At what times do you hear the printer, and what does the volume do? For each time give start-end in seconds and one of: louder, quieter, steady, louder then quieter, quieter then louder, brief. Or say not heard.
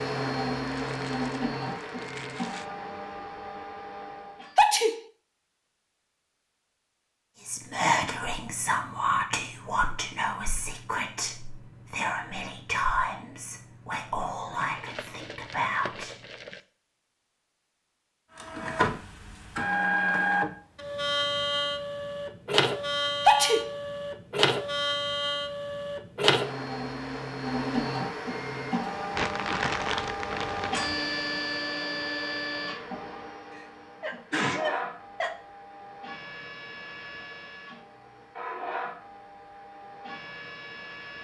0.0-4.5 quieter
18.4-41.1 quieter.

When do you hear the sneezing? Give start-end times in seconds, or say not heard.
4.5-5.0, 23.2-23.7, 34.0-35.3.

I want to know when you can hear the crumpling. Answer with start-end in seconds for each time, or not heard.
0.8-2.6, 14.6-16.6, 29.1-31.0.